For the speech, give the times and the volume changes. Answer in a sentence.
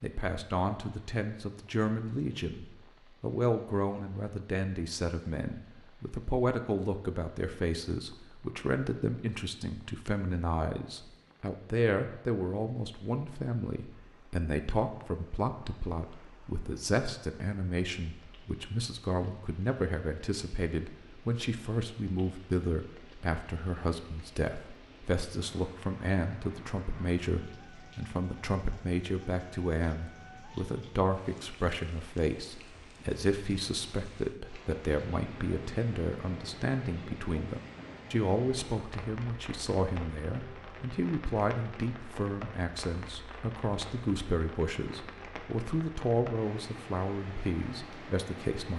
The speech can be heard from 0.0 to 48.7 s, at a steady volume.